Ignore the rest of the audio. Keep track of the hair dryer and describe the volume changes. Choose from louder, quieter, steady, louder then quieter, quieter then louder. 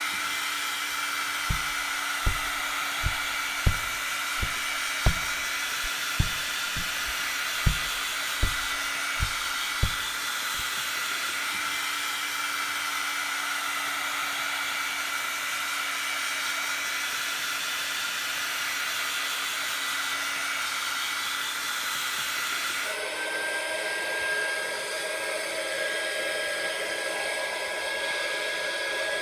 steady.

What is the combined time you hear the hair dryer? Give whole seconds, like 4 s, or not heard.
29 s.